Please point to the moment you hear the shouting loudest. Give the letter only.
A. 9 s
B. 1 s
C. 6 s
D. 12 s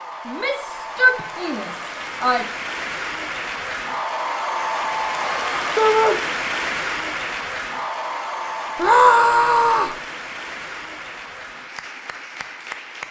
A.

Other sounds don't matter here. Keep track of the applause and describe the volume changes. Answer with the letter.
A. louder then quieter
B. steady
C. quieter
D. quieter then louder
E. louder
A.